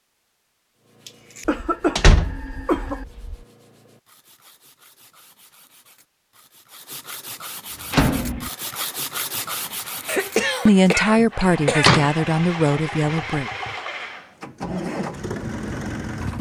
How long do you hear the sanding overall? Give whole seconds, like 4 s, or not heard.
10 s.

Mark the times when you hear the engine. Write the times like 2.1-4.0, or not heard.
7.7-16.3.